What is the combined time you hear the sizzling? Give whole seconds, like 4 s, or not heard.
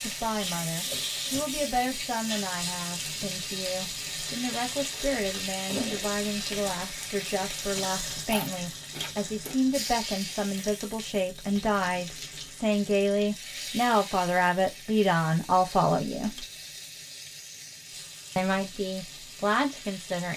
20 s.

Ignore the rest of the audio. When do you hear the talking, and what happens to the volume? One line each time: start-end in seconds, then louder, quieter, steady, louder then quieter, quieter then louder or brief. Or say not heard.
0.0-16.4 louder
18.4-20.3 brief.